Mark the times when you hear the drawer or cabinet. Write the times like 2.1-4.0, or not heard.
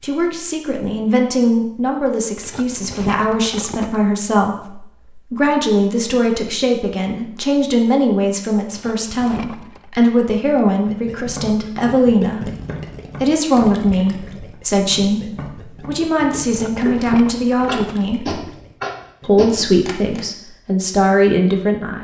not heard.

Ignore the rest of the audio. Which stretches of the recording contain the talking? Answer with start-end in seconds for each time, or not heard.
0.0-12.5, 13.2-18.4, 19.2-21.9.